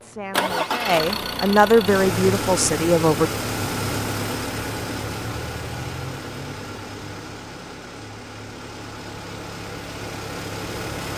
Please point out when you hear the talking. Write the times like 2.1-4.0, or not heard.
0.0-3.3.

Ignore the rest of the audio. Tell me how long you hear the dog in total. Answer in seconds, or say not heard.
not heard.